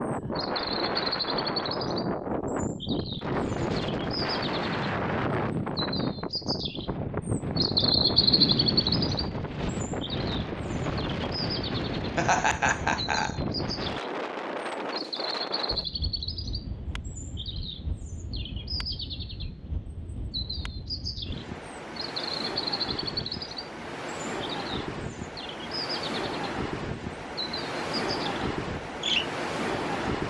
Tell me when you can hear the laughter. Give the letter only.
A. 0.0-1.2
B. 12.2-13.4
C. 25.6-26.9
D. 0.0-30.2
B.